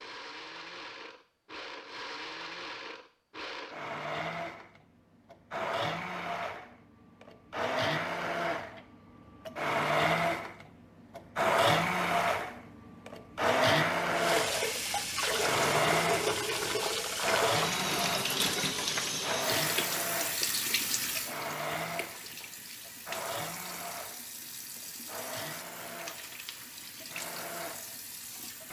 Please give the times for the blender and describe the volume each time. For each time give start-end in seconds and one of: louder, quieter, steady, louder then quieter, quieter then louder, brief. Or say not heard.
0.0-28.6 louder then quieter.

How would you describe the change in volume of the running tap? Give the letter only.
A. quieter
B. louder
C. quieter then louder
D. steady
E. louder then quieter
A.